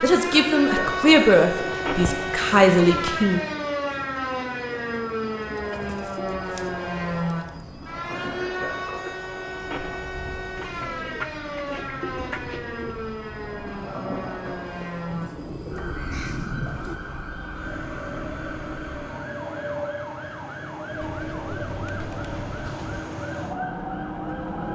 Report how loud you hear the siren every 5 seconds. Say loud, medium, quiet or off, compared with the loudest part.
loud, loud, medium, medium, quiet.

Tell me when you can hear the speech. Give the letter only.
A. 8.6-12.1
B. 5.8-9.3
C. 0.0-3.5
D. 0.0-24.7
C.